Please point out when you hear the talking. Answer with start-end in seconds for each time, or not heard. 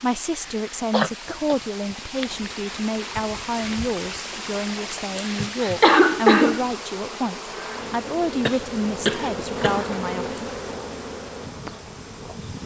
0.0-10.3.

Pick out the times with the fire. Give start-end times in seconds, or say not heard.
not heard.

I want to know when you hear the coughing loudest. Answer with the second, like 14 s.
6 s.